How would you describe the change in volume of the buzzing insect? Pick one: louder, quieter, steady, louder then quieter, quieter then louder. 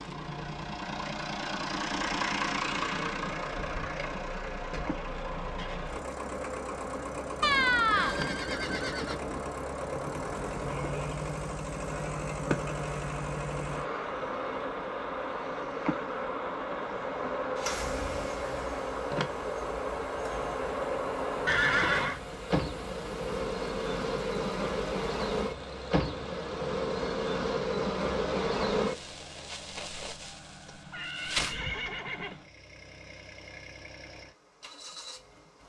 louder.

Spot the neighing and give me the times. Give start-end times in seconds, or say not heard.
7.4-9.4, 21.4-22.2, 30.6-32.4.